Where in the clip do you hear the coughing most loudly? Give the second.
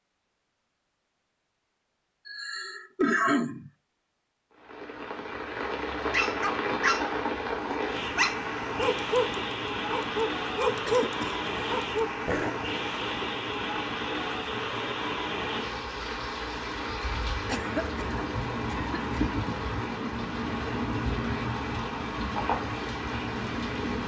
3 s.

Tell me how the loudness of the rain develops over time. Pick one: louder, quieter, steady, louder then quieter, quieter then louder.
steady.